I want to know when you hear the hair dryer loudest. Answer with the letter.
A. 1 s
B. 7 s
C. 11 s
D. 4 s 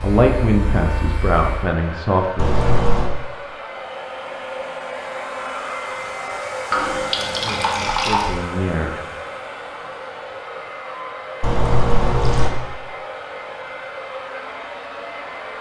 B.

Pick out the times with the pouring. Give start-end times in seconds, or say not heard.
2.4-3.1, 6.7-8.3, 11.4-12.5.